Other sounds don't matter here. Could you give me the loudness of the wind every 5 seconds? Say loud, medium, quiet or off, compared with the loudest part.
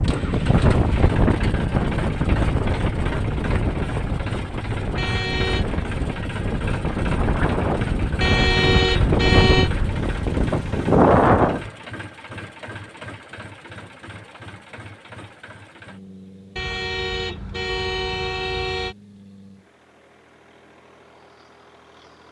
medium, medium, loud, off, off.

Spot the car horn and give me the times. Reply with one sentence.
You can hear the car horn from 5.0 to 5.7 s, from 8.2 to 9.7 s and from 16.6 to 18.9 s.